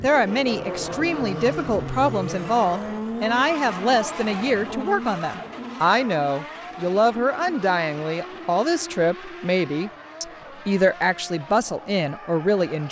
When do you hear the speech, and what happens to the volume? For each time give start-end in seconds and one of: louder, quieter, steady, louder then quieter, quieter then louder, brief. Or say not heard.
0.0-12.8 steady.